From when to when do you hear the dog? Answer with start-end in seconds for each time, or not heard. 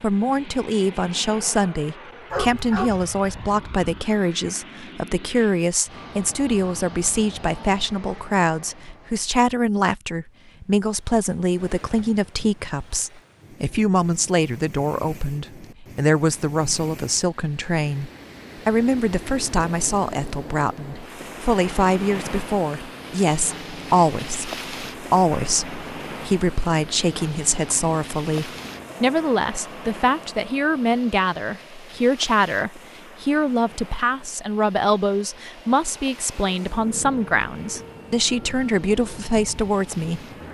2.3-3.9.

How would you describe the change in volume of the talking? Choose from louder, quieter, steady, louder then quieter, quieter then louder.
steady.